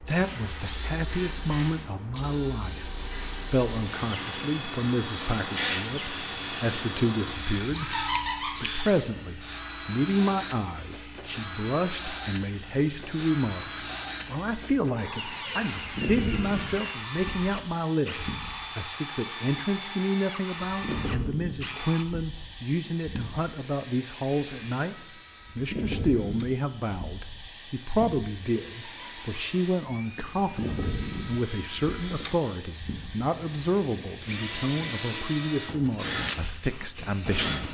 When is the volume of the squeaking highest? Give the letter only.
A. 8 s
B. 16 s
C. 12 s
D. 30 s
A.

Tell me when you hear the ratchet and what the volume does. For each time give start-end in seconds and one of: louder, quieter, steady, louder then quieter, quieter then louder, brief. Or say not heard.
not heard.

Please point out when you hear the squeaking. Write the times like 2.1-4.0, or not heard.
7.9-8.6, 28.9-29.4.